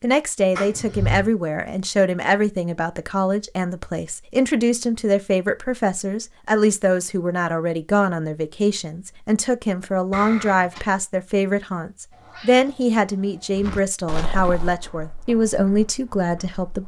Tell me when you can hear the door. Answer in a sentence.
The door can be heard from 0.6 to 1.3 s and from 10.1 to 10.8 s.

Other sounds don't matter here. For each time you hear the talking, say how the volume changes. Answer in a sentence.
You can hear the talking from 0.0 to 16.8 s, at a steady volume.